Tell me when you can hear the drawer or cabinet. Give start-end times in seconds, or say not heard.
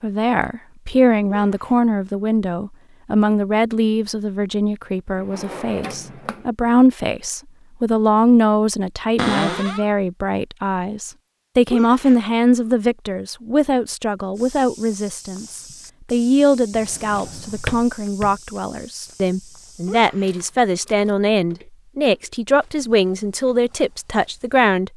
5.2-6.5, 9.2-9.8, 16.8-18.4.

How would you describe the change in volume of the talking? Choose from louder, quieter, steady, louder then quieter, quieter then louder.
steady.